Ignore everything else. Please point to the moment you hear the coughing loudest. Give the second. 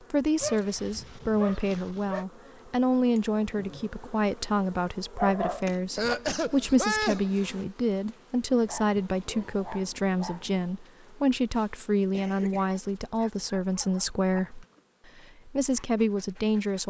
7 s.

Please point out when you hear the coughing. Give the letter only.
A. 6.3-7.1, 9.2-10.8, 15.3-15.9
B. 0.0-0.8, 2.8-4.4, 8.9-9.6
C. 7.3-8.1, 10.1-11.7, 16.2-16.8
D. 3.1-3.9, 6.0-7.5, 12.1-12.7
D.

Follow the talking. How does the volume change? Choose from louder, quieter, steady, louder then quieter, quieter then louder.
steady.